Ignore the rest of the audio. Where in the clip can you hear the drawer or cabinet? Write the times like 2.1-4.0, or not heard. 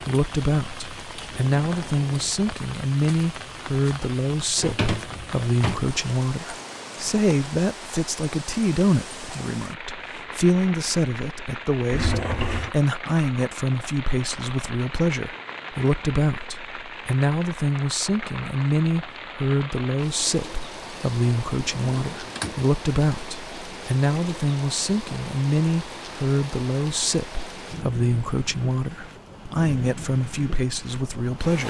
4.5-5.9, 11.9-12.8, 21.8-22.6.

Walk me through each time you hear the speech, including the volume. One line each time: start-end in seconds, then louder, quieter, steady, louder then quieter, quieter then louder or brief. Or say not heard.
0.0-31.6 steady.